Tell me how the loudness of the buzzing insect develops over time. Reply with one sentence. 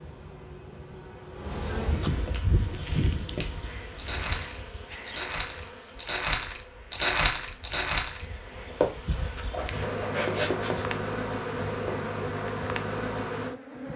The volume of the buzzing insect goes down, then up.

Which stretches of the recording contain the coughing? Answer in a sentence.
The coughing can't be heard in this clip.